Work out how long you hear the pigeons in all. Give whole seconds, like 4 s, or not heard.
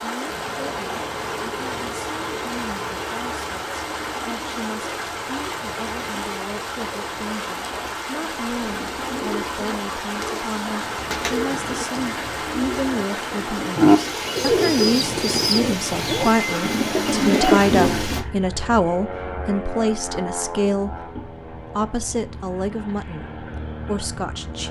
10 s.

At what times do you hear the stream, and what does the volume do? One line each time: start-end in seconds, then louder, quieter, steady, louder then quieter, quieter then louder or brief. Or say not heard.
0.0-18.2 steady.